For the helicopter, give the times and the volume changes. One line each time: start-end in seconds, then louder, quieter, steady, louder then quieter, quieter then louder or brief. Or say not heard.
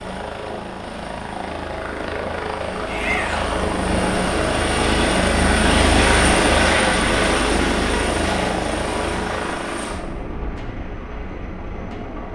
0.0-12.3 louder then quieter.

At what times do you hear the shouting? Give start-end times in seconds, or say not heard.
2.9-3.6.